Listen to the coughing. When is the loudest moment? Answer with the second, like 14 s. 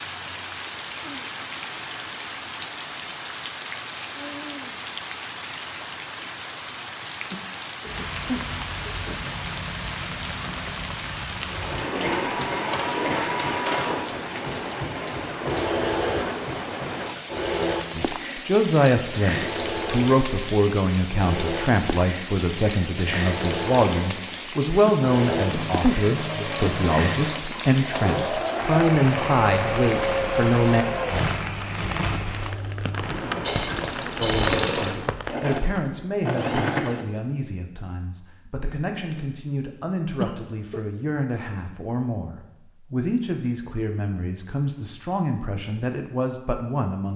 26 s.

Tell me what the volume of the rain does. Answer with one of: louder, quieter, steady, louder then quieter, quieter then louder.
steady.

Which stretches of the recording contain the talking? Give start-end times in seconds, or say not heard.
17.9-30.9, 34.1-47.1.